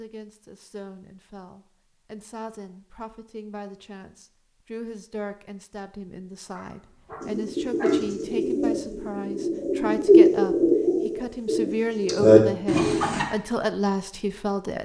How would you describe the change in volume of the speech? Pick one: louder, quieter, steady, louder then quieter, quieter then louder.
louder.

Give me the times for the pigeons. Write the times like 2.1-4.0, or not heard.
7.2-13.2.